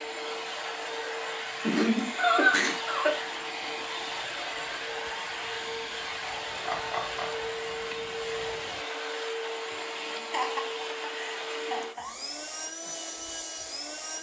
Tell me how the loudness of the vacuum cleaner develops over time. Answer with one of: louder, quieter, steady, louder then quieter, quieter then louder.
steady.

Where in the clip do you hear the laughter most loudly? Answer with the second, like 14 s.
2 s.